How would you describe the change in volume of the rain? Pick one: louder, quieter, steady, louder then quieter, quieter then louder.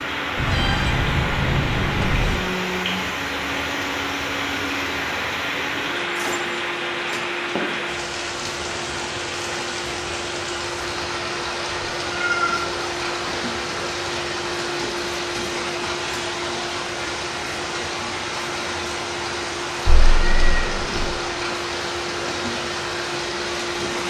steady.